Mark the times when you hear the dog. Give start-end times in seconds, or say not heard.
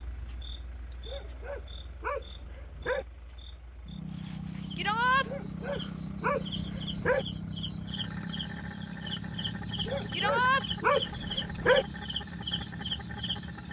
1.0-3.0, 5.2-7.2, 9.8-11.8.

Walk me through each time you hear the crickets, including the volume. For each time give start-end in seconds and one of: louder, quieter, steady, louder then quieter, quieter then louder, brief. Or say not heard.
0.0-13.6 louder.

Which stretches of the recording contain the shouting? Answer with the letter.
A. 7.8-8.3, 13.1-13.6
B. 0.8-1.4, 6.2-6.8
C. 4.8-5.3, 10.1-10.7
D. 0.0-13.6
C.